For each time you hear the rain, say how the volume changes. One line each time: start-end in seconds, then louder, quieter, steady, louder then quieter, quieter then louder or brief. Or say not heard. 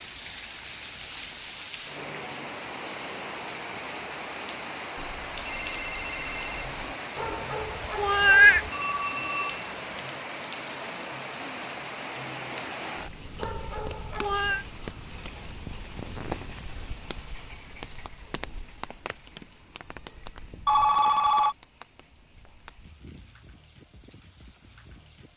0.0-25.3 quieter.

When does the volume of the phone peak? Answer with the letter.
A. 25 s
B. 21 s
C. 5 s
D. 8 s
B.